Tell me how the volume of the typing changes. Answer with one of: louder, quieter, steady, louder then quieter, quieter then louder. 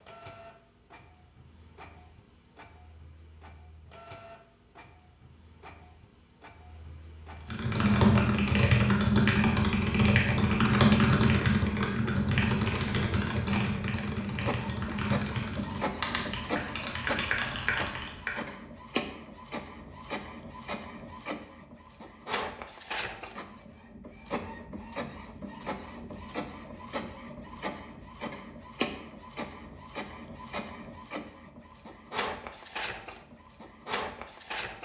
quieter.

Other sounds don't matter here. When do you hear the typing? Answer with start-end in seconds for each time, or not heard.
7.5-18.4.